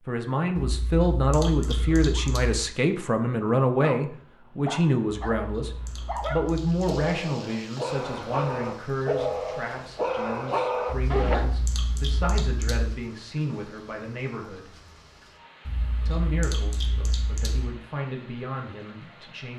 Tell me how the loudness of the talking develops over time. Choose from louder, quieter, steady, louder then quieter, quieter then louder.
quieter.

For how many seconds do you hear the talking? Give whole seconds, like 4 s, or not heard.
18 s.